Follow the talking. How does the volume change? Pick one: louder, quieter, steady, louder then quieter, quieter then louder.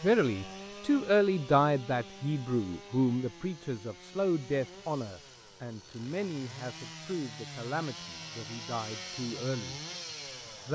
quieter.